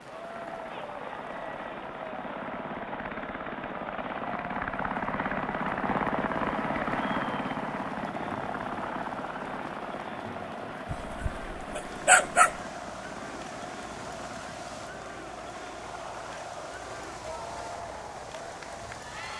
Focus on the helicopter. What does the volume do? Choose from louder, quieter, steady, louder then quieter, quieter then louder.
louder then quieter.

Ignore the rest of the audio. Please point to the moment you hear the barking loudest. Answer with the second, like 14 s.
12 s.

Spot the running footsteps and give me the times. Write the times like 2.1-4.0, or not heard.
not heard.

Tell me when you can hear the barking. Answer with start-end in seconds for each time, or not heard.
10.9-12.6.